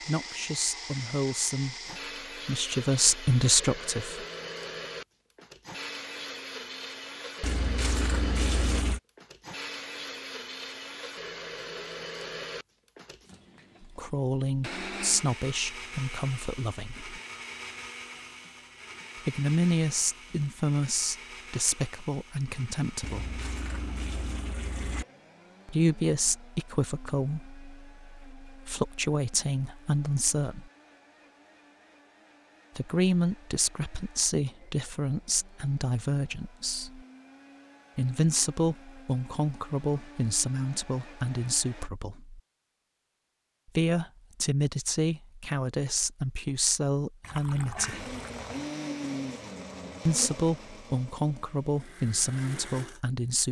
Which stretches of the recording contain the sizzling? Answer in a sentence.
The sizzling can't be heard in this clip.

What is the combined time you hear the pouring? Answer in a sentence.
You can hear the pouring for 5 seconds altogether.